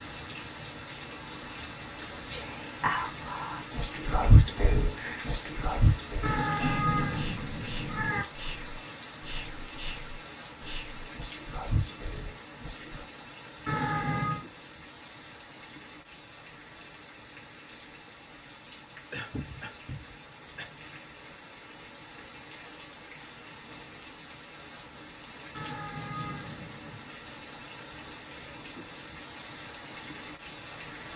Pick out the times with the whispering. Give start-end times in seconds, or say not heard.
1.9-13.1.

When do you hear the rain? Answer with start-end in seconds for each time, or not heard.
0.0-31.1.